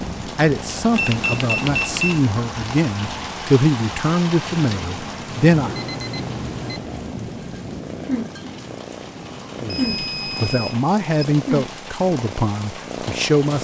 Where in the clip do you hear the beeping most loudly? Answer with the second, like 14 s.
2 s.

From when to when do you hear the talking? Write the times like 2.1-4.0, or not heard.
0.2-5.8, 9.6-13.5.